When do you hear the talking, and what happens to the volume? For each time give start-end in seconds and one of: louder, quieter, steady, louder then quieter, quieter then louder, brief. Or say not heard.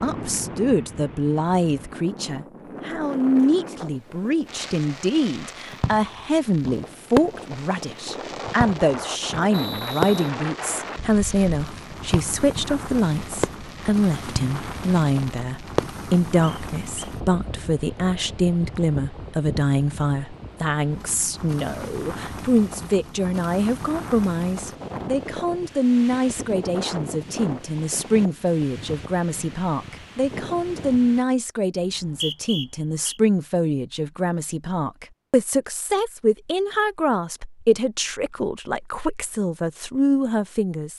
0.0-40.9 steady.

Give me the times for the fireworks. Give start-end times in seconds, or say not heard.
4.5-16.0.